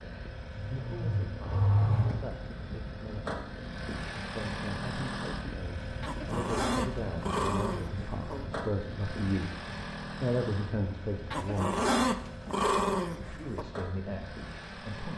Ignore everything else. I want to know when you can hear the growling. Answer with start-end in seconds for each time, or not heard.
0.6-2.3, 6.0-8.5, 11.3-13.7.